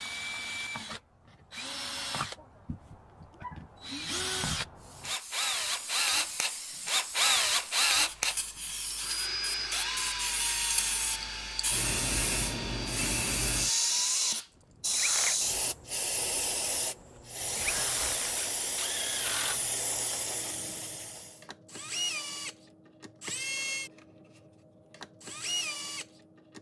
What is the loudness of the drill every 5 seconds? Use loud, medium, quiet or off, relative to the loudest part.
medium, loud, medium, medium, medium, medium.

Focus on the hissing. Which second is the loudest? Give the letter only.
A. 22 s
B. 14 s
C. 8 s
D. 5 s
B.